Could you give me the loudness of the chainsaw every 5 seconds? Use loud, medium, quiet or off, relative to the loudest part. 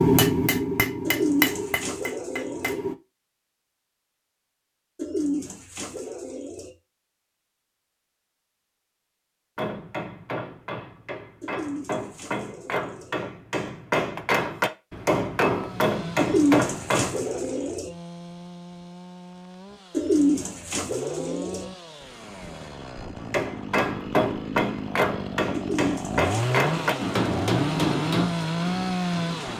off, off, off, quiet, medium, loud.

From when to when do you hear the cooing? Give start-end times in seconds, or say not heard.
1.1-2.8, 5.0-6.7, 11.4-13.2, 16.1-17.9, 19.9-21.6, 25.5-27.0.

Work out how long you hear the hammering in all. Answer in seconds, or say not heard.
17 s.